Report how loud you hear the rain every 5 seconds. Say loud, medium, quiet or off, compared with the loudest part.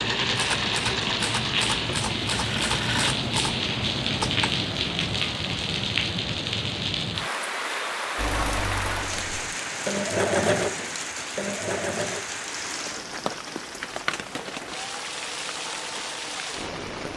loud, loud, medium, medium.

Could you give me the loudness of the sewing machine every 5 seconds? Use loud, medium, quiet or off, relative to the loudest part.
loud, loud, loud, quiet.